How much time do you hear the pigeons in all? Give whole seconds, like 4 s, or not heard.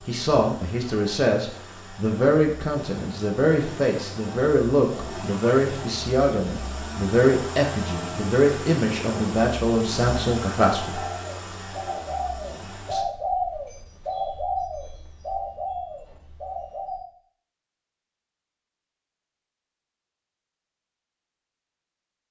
6 s.